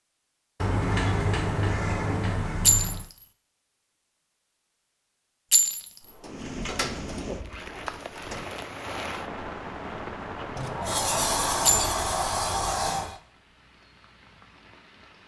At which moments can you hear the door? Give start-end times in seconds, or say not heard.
0.6-3.1, 6.0-8.4, 10.6-13.2.